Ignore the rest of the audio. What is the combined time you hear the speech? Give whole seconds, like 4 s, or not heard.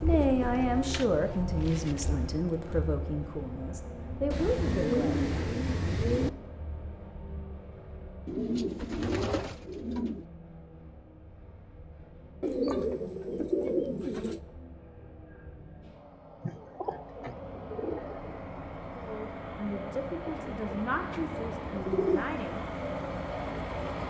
9 s.